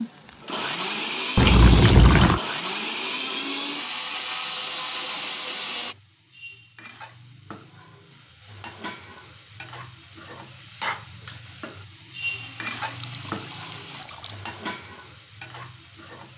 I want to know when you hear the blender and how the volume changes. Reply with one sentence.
The blender can be heard from 0.0 to 6.0 s, at a steady volume; and briefly from 12.2 to 14.1 s.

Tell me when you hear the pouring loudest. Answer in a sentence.
The loudest moment of the pouring is at 2 seconds.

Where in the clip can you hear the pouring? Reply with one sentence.
The pouring can be heard from 1.4 to 2.4 s and from 12.8 to 14.3 s.